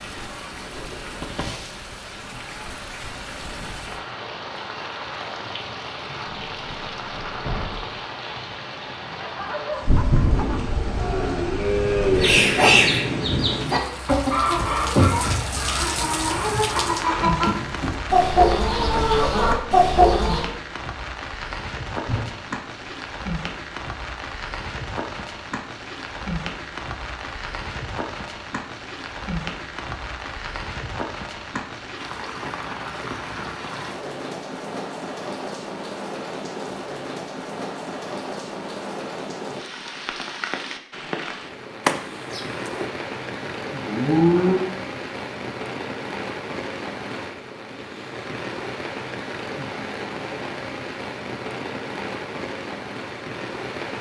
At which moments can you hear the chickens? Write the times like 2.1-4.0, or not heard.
12.2-20.4.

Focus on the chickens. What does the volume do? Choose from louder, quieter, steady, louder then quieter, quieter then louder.
quieter then louder.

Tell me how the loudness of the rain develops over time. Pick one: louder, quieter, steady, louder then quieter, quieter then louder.
steady.